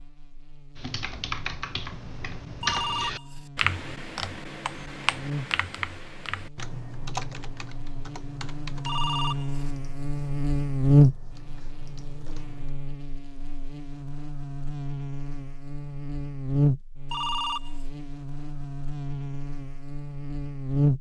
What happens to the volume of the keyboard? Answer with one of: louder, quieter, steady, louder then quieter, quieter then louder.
quieter.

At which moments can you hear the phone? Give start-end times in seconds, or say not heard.
2.6-3.5, 8.8-9.7, 17.1-17.8.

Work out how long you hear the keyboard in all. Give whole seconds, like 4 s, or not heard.
12 s.